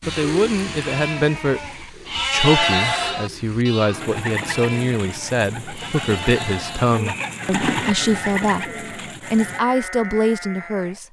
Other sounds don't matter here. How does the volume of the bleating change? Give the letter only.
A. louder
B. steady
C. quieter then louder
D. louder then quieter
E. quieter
D.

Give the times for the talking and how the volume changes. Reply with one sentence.
You can hear the talking from 0.1 to 11.0 s, at a steady volume.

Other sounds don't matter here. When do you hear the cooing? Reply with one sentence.
The cooing can be heard from 0.0 to 9.6 s.